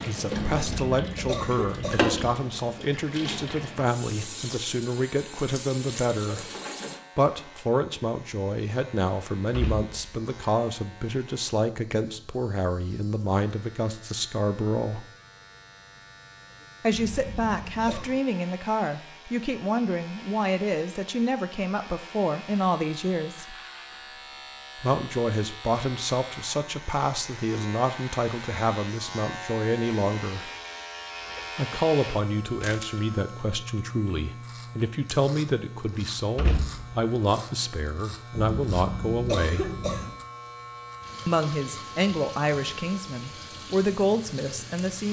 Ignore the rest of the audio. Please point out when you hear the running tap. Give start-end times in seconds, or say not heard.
0.0-7.0, 41.0-45.0.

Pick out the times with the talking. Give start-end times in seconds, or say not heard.
0.1-6.5, 7.2-15.1, 16.8-23.6, 24.8-30.5, 31.6-39.8, 41.2-45.0.